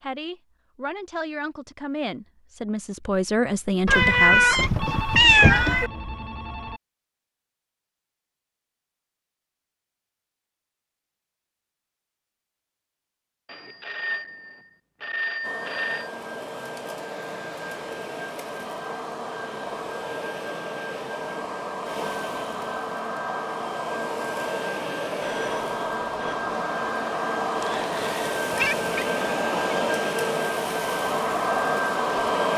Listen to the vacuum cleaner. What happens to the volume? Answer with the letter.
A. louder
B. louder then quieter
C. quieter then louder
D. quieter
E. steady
A.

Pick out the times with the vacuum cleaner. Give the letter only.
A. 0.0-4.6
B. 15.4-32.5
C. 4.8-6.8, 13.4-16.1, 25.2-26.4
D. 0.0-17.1
B.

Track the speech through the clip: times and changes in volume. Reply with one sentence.
You can hear the speech from 0.0 to 4.6 s, getting louder.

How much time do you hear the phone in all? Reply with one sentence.
The phone can be heard for 6 seconds in total.